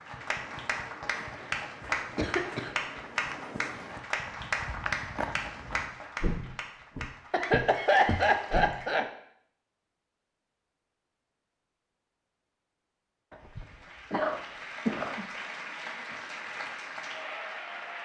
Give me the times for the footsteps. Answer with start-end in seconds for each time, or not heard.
0.0-8.8.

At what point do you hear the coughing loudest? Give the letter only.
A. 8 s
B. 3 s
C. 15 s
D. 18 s
A.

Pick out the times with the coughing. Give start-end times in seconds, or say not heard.
2.1-2.7, 7.3-9.1, 13.3-15.3.